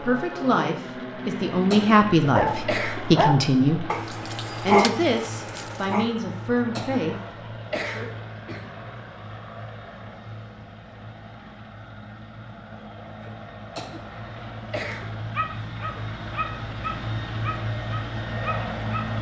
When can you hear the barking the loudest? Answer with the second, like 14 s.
5 s.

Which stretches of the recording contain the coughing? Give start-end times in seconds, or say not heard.
1.7-3.0, 6.8-8.7, 13.8-15.1.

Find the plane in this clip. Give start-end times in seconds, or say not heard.
0.0-19.1.